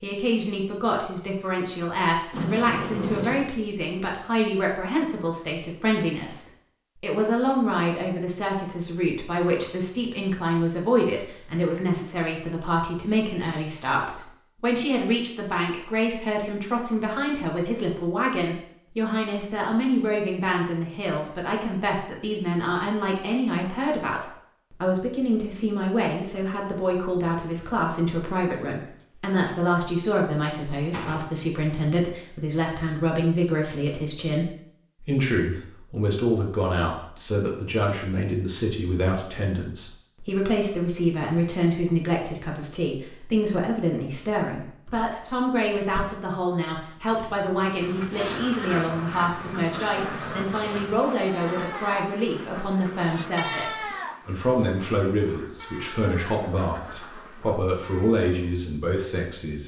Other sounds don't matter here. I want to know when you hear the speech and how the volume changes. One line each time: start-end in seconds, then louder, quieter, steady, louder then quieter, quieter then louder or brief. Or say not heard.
0.0-59.6 steady.